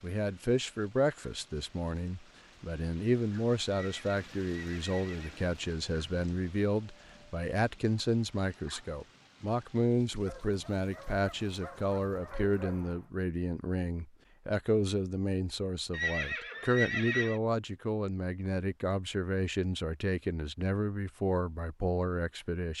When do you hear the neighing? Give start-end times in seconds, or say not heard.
3.7-5.5, 15.9-17.4.